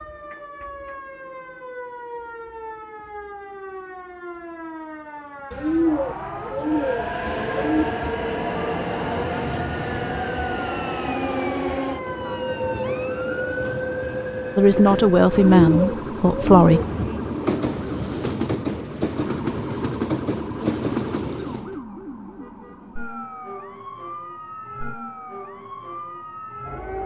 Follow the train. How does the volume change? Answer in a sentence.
The volume of the train stays about the same.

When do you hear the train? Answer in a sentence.
The train can be heard from 6.6 to 21.8 s.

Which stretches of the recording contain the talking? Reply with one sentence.
The talking can be heard from 14.6 to 16.8 s.